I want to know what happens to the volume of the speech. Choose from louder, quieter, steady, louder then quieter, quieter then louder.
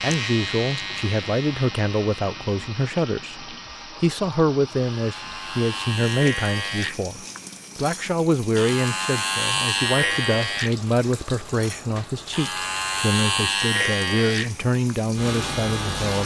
steady.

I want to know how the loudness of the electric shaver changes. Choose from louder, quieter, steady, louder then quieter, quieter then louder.
louder.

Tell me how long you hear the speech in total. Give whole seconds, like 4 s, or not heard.
16 s.